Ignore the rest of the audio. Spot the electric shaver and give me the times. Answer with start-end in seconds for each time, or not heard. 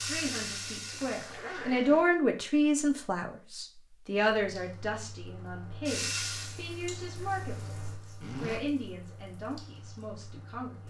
not heard.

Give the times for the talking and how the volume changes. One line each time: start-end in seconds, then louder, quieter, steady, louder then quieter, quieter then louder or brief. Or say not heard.
0.0-10.8 quieter.